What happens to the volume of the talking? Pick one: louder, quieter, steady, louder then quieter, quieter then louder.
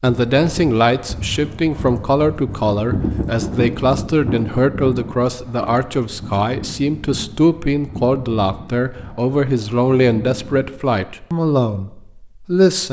steady.